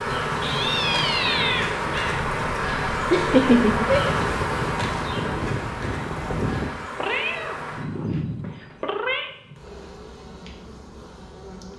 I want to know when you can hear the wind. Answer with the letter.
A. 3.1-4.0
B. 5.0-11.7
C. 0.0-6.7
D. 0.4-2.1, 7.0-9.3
C.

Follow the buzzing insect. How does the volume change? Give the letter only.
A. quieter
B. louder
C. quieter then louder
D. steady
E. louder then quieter
A.